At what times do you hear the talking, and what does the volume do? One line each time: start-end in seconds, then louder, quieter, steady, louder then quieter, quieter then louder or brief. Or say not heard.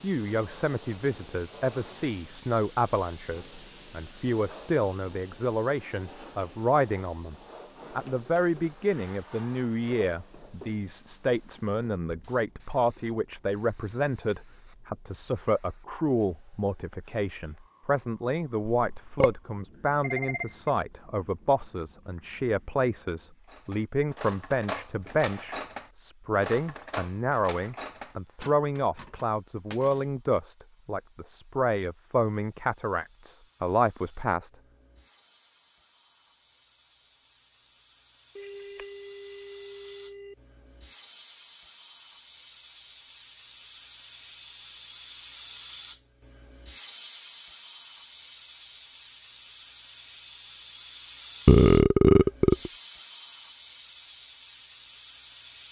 0.0-34.5 steady.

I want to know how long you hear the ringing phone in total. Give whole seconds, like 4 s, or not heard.
3 s.